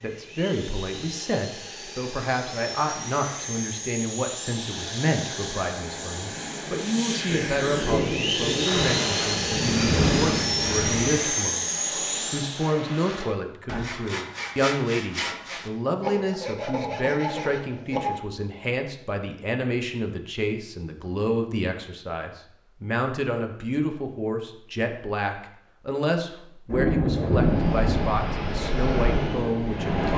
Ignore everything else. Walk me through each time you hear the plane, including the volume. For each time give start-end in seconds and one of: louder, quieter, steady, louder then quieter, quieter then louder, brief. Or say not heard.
0.0-12.8 louder
27.2-30.1 brief.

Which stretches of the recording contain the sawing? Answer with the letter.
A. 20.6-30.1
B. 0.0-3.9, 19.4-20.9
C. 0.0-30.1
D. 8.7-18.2
D.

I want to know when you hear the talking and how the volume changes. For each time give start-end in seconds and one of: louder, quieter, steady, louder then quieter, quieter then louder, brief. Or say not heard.
0.0-30.1 steady.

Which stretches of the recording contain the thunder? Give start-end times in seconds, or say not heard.
7.2-11.1, 26.7-28.1.